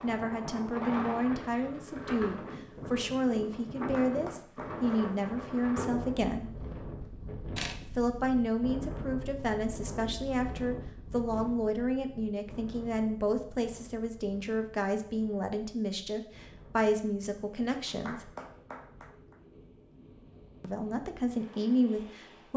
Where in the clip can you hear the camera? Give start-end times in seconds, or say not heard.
7.5-8.2.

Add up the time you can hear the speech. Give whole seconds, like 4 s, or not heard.
19 s.